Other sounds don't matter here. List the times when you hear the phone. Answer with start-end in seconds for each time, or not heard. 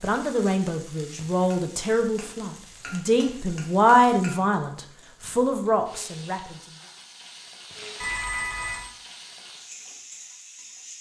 8.0-8.9.